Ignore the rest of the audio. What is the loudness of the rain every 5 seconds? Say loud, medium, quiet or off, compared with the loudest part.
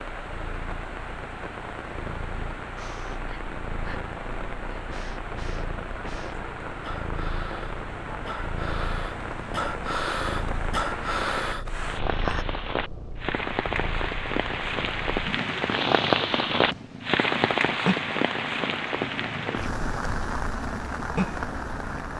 medium, medium, medium, loud, medium.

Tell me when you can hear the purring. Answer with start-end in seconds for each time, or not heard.
0.0-22.1.